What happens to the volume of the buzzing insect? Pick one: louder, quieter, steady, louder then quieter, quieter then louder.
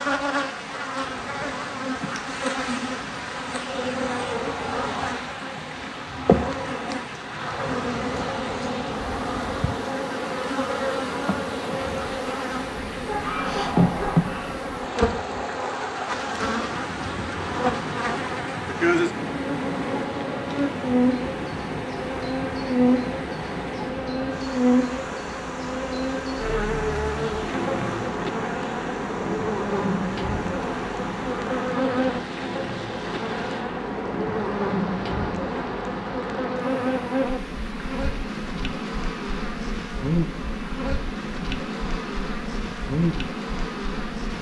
steady.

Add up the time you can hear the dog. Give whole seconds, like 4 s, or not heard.
2 s.